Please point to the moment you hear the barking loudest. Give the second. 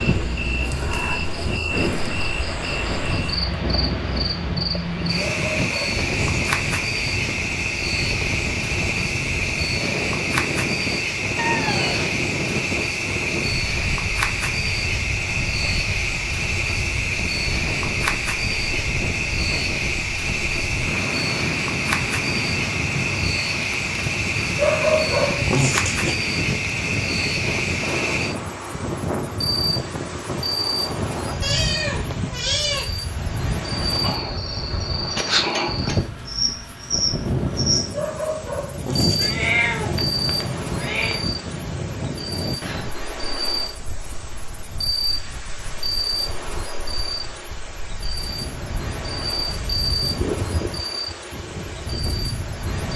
25 s.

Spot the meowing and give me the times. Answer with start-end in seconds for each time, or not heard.
11.3-12.1, 31.4-32.9, 39.1-41.2.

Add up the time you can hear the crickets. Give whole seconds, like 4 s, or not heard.
53 s.